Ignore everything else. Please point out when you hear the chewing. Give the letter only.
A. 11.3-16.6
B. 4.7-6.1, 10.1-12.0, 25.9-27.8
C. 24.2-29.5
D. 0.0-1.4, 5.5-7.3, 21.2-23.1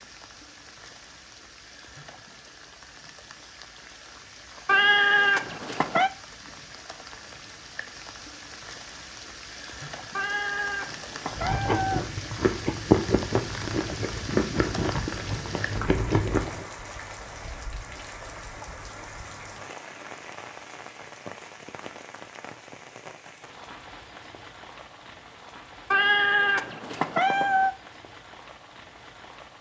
A.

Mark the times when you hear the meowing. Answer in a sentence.
You can hear the meowing from 4.7 to 6.1 s, from 10.1 to 12.0 s and from 25.9 to 27.8 s.